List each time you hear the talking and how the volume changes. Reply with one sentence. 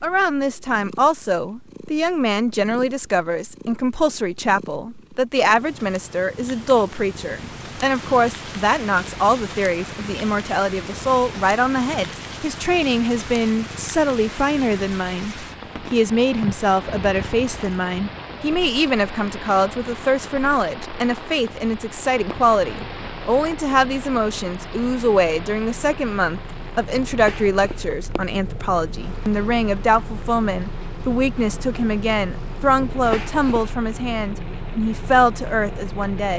The talking can be heard from 0.0 to 36.3 s, at a steady volume.